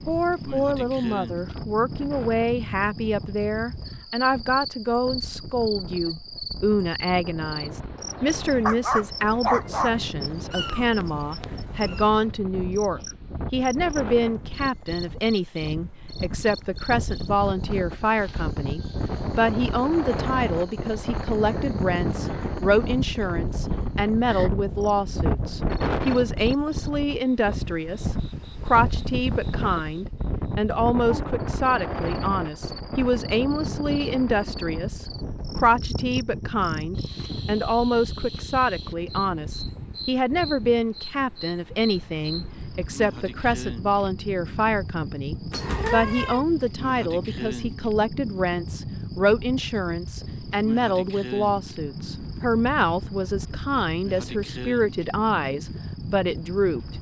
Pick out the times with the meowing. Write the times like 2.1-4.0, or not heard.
10.5-12.1, 45.5-46.5.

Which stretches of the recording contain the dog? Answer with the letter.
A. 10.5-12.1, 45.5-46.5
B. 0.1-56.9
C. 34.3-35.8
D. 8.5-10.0
D.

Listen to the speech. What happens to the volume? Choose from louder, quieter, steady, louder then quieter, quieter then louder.
steady.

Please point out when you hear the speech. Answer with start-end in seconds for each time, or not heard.
0.1-56.9.